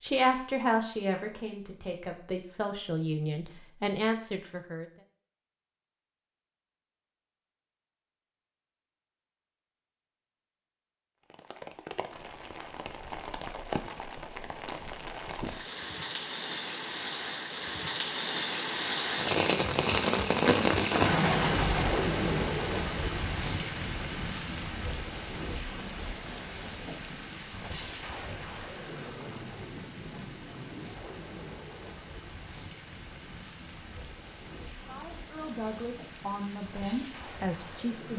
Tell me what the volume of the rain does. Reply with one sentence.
The volume of the rain goes up, then down.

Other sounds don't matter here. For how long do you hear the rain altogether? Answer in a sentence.
The rain can be heard for 27 seconds in total.